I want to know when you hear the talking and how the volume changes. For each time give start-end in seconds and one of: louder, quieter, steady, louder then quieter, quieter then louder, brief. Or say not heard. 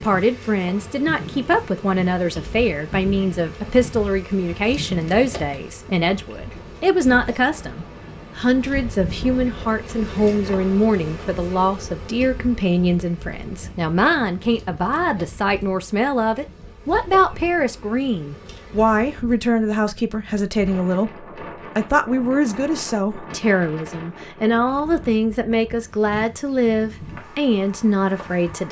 0.0-28.6 steady.